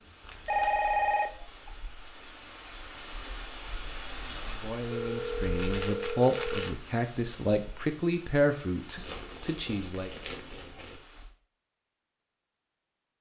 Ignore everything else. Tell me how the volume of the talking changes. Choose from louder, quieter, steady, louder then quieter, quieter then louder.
louder then quieter.